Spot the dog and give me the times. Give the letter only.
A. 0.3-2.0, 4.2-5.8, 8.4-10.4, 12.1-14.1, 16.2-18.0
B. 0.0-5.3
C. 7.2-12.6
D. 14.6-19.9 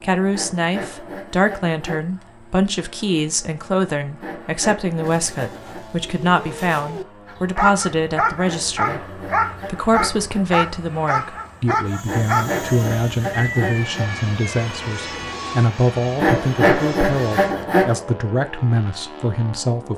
C.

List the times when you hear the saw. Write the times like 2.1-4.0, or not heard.
0.3-2.0, 4.2-5.8, 8.4-10.4, 12.1-14.1, 16.2-18.0.